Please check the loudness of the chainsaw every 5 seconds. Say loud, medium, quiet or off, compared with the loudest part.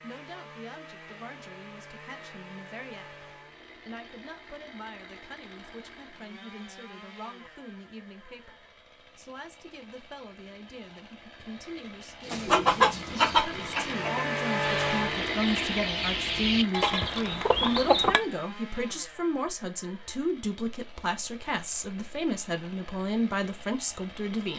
quiet, quiet, loud, loud, quiet.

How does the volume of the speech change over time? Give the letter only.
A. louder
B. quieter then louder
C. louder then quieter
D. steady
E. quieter
A.